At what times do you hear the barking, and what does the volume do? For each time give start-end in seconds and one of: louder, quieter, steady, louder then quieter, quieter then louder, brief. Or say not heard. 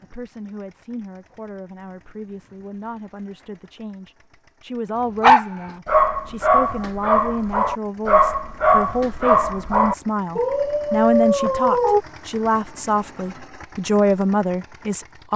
5.2-12.0 steady.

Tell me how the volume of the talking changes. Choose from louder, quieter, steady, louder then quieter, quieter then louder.
louder.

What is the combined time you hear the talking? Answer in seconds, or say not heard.
15 s.